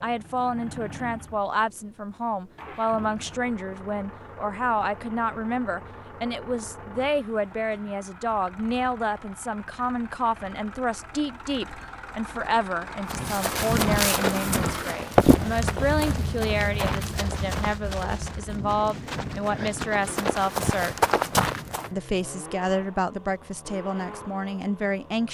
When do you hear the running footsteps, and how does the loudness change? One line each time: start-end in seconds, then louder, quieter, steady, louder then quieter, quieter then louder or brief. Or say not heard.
13.1-21.9 quieter then louder.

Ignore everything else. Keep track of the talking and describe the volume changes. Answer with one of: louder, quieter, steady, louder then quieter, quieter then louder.
steady.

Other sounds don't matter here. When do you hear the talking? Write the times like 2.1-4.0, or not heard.
0.0-20.9, 21.9-25.2.